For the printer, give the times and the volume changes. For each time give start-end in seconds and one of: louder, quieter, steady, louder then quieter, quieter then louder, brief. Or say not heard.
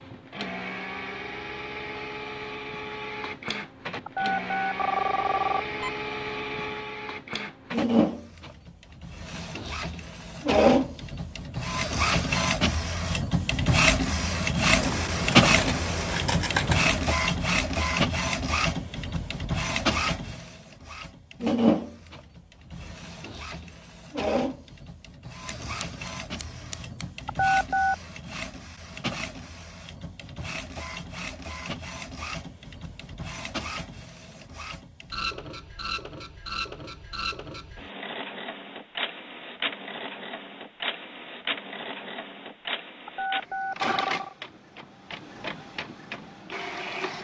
0.0-47.1 louder then quieter.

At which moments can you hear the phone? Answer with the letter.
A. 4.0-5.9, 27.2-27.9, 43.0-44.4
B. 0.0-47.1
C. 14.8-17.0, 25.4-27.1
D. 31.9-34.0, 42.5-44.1
A.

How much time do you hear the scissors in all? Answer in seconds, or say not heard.
4 s.